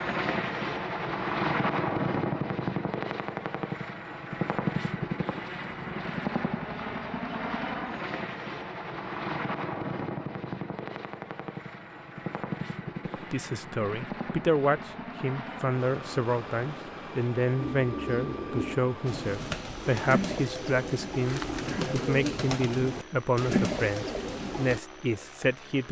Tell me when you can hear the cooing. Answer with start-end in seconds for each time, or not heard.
17.6-24.8.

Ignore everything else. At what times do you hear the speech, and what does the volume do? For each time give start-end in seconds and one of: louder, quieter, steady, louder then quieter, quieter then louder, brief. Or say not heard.
13.3-25.8 steady.